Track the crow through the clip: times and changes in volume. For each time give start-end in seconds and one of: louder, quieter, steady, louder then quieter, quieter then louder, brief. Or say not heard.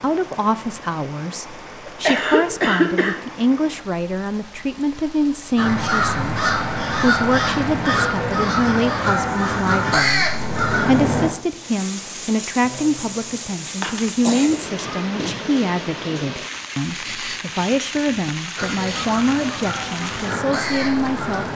5.5-11.3 steady
18.6-21.4 brief.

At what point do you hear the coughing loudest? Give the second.
3 s.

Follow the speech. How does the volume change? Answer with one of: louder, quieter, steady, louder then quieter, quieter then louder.
steady.